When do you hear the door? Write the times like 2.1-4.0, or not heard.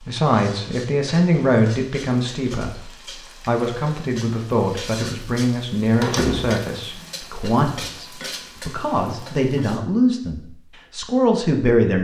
6.0-6.7.